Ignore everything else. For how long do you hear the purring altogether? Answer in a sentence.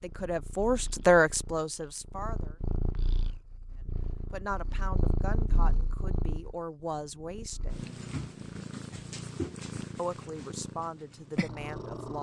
You can hear the purring for 12 seconds altogether.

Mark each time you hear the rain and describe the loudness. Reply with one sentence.
The rain can't be heard in this clip.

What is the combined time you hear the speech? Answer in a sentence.
You can hear the speech for 8 seconds altogether.